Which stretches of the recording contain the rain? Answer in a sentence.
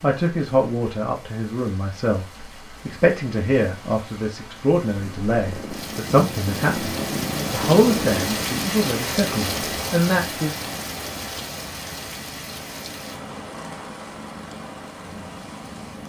You can hear the rain from 0.0 to 16.0 s.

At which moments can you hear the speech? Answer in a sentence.
The speech can be heard from 0.0 to 10.5 s.